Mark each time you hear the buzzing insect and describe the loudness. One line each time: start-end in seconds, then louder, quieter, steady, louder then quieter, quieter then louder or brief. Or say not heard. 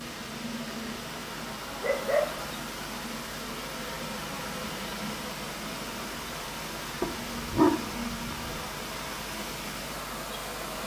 0.0-10.8 steady.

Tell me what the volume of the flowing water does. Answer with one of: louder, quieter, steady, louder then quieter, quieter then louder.
steady.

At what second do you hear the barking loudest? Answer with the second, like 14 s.
8 s.